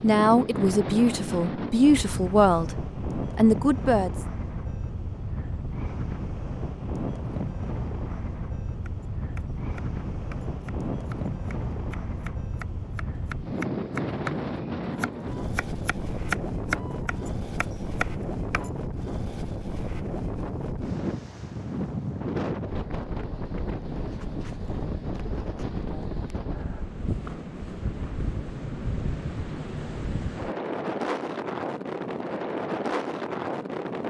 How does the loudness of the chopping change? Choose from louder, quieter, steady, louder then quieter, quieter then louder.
louder.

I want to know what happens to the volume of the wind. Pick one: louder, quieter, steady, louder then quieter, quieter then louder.
steady.